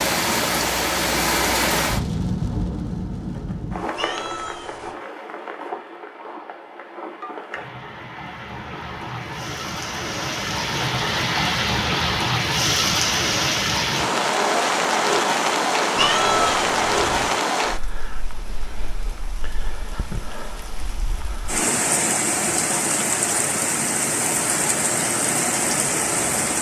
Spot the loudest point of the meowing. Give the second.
16 s.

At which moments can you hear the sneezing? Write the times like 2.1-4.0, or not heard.
not heard.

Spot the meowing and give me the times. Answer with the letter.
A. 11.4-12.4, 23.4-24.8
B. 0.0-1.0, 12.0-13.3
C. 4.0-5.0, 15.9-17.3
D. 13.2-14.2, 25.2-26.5
C.